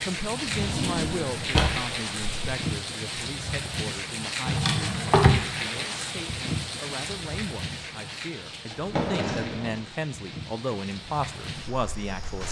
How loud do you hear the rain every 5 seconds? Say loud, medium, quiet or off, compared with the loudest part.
loud, loud, medium.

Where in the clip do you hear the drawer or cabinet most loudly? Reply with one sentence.
The loudest moment of the drawer or cabinet is at 5 seconds.